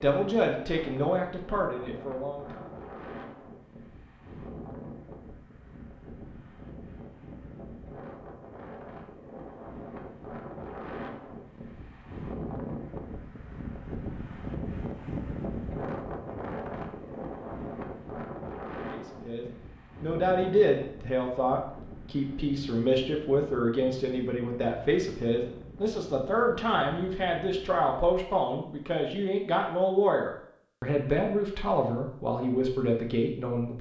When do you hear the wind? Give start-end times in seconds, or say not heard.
0.1-28.0.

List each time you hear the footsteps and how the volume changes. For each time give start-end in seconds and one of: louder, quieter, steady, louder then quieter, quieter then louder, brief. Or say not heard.
not heard.